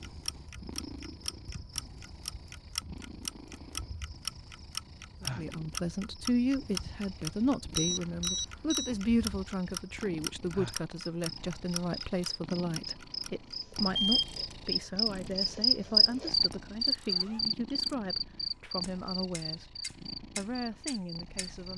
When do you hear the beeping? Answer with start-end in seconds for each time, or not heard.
7.8-8.9, 13.9-14.8.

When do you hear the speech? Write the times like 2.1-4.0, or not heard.
5.2-19.7, 20.4-21.7.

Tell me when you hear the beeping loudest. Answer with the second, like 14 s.
14 s.